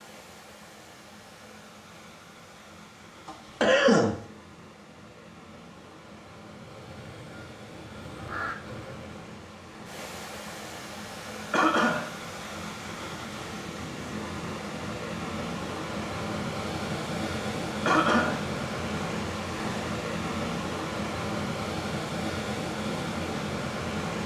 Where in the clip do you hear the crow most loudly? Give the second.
8 s.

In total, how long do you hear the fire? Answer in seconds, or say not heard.
not heard.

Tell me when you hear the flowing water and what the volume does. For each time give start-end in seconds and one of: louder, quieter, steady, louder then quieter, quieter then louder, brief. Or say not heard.
0.0-24.2 louder.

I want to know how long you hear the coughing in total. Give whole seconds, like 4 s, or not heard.
2 s.